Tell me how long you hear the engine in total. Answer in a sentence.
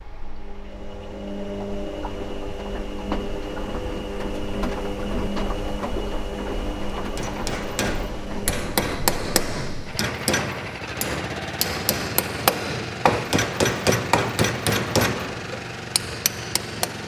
The engine can be heard for 17 seconds in total.